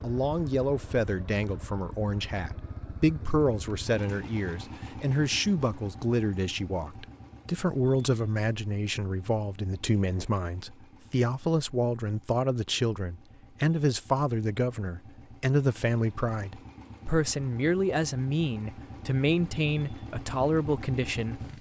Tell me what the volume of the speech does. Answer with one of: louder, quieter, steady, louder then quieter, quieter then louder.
steady.